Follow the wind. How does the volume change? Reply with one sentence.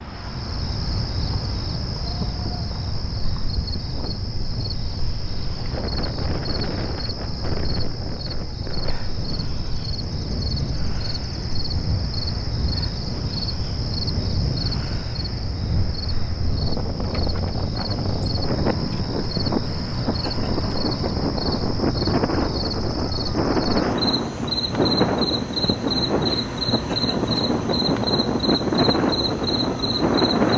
The loudness of the wind goes up.